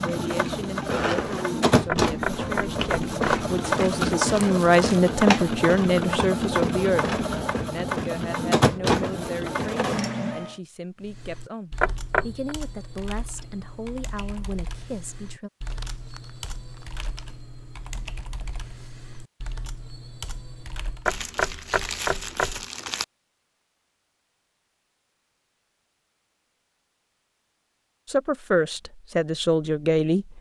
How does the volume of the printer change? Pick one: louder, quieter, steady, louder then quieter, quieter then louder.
steady.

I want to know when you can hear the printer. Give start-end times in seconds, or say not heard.
0.0-10.6.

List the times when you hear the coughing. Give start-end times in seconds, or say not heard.
not heard.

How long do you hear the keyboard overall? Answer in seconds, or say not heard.
10 s.